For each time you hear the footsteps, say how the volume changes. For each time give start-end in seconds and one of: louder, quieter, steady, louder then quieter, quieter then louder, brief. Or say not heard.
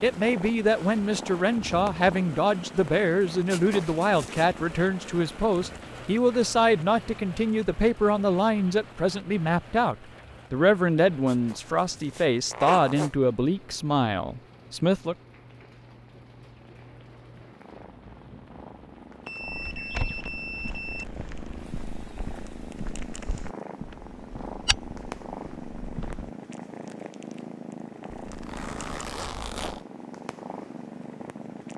19.4-26.3 quieter then louder.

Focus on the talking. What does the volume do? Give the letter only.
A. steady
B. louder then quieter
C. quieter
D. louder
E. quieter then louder
A.